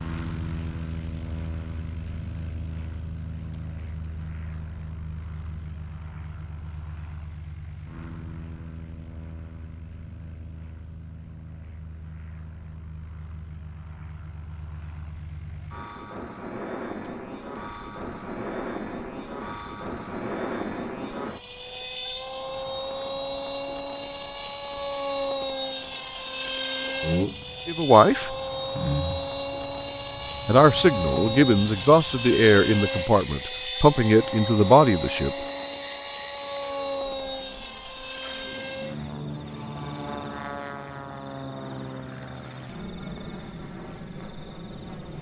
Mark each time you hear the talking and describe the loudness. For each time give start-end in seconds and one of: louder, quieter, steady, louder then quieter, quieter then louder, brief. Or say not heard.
27.6-28.4 brief
30.4-35.3 steady.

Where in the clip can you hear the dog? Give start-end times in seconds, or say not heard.
not heard.